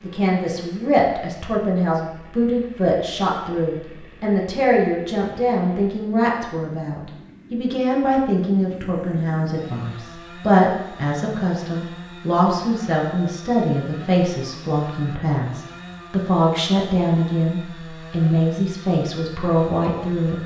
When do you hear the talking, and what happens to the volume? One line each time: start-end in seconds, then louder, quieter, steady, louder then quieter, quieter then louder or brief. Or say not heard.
0.0-20.4 steady.